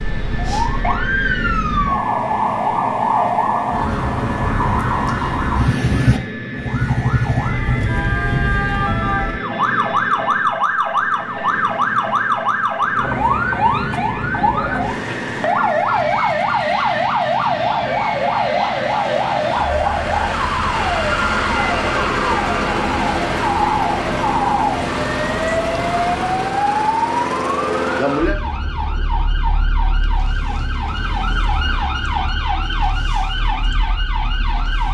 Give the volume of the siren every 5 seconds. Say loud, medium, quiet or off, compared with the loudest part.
loud, loud, loud, loud, loud, loud, medium.